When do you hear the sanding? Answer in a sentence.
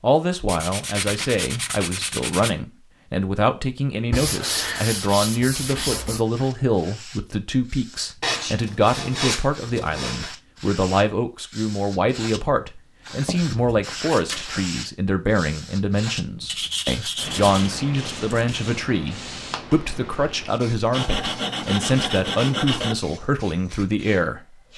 You can hear the sanding from 0.5 to 2.5 s, from 4.1 to 6.2 s, from 8.2 to 10.3 s, from 13.1 to 14.7 s, from 16.4 to 18.6 s and from 20.9 to 22.9 s.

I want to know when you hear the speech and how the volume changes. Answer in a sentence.
The speech can be heard from 0.0 to 24.6 s, at a steady volume.